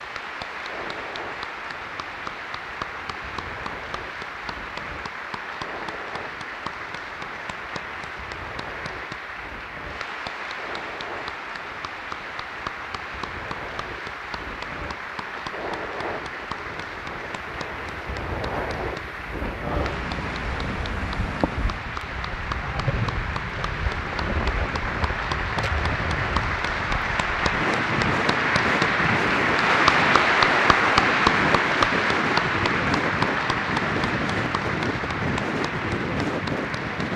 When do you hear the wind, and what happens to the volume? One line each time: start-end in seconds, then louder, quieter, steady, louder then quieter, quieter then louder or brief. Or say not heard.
0.1-37.1 louder.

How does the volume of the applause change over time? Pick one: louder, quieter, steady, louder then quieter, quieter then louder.
louder.